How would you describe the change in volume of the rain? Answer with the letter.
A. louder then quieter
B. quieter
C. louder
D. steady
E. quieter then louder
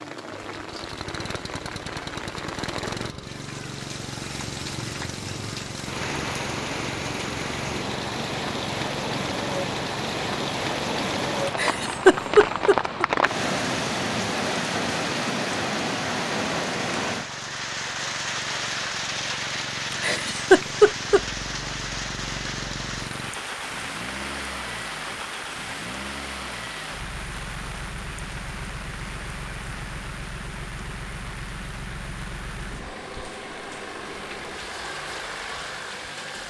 A.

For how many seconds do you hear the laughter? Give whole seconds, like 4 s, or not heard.
3 s.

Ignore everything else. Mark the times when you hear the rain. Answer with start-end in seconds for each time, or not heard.
0.0-36.4.